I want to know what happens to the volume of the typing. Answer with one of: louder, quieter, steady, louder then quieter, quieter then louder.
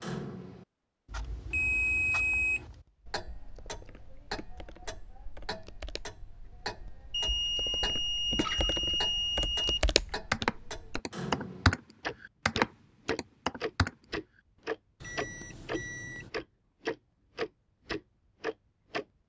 louder.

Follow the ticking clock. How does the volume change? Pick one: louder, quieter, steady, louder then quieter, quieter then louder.
louder.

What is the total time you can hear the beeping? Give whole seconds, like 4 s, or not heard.
5 s.